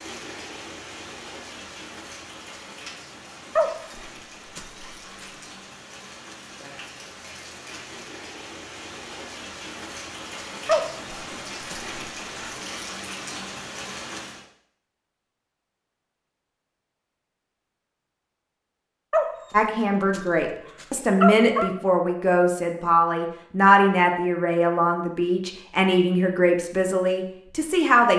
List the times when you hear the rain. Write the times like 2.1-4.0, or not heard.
0.0-14.4.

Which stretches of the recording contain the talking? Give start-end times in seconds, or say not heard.
19.5-28.1.